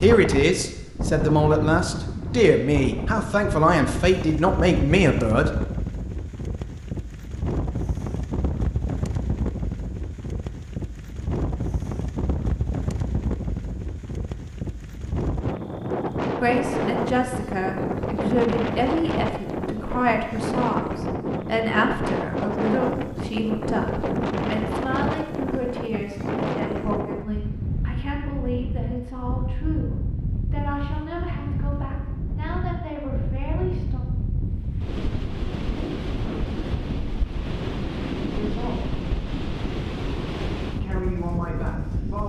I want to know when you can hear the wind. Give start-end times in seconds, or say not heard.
0.0-42.2.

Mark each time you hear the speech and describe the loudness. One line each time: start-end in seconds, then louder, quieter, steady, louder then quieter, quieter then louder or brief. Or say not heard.
0.0-5.5 steady
16.4-34.0 quieter
38.2-39.0 brief
40.8-42.2 brief.